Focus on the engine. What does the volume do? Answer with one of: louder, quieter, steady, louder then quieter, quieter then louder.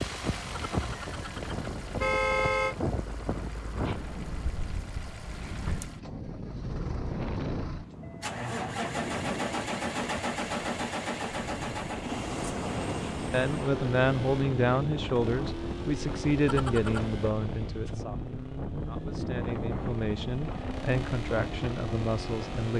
louder then quieter.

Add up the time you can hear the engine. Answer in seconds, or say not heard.
23 s.